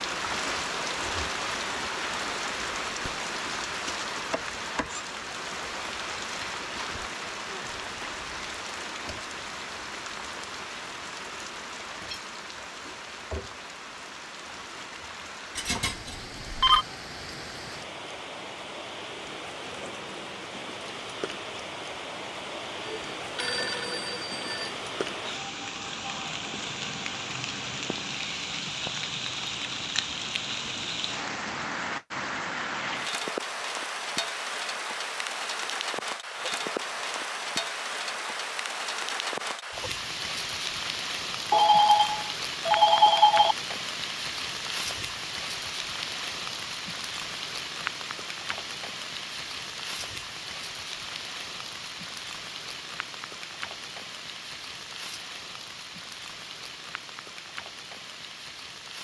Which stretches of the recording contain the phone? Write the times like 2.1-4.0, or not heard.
15.6-16.9, 22.8-24.8, 41.5-43.5.